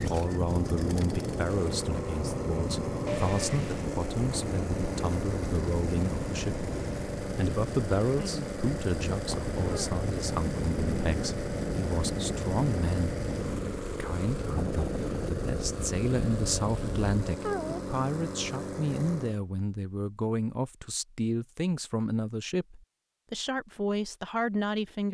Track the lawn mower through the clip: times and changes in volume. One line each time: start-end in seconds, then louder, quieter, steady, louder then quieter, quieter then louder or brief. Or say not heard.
0.0-19.4 steady.